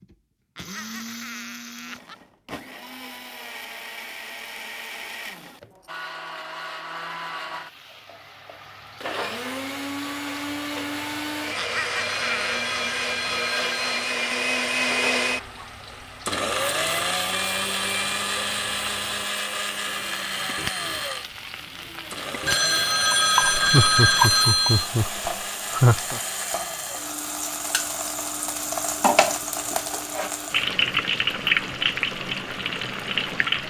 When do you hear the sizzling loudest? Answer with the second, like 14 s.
31 s.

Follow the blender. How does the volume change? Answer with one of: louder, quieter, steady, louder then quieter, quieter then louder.
louder then quieter.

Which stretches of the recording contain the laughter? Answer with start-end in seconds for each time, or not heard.
0.6-2.1, 11.6-12.6, 23.6-26.2.